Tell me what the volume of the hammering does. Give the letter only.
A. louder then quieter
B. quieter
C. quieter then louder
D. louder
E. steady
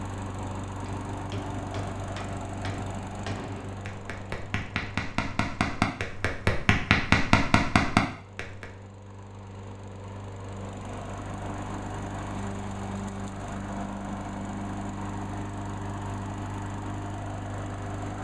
D.